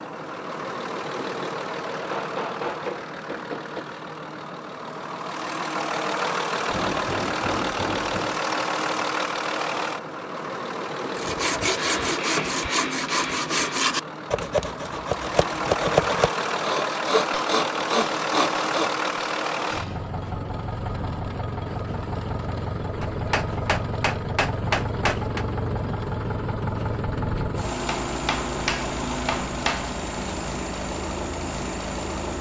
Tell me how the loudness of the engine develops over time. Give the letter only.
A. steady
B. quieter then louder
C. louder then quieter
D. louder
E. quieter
A.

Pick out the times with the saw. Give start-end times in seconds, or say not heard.
11.2-18.9.